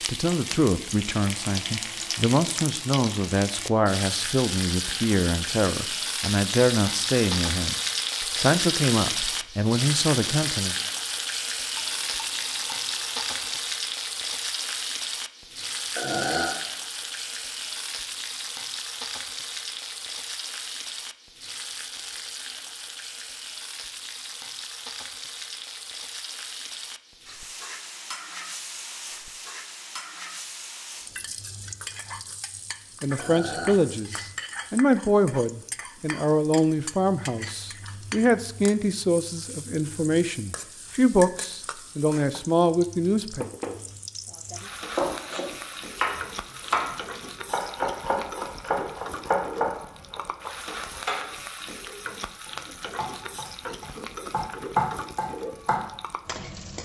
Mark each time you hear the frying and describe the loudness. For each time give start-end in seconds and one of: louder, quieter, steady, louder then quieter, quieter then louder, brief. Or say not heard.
0.0-56.8 quieter.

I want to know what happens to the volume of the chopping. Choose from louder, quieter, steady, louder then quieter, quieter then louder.
quieter then louder.